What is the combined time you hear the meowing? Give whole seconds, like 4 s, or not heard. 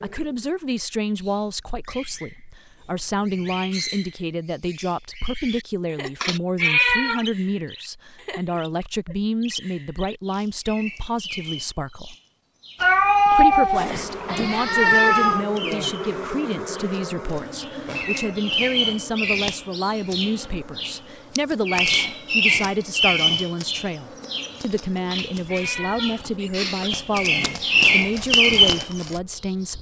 6 s.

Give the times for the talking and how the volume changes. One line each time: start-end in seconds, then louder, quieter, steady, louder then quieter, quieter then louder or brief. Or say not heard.
0.0-12.2 steady
13.3-29.7 steady.